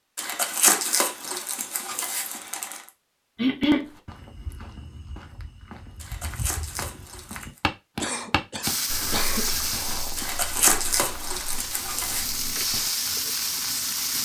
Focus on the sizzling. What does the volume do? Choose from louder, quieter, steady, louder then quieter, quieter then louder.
quieter then louder.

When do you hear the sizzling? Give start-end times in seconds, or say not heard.
8.6-14.2.